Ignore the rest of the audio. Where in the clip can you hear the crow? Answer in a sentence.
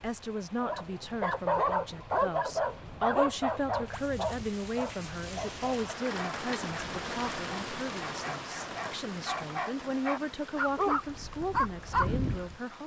You can't hear the crow here.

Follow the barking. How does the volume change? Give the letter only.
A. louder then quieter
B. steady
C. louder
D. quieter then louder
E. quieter
D.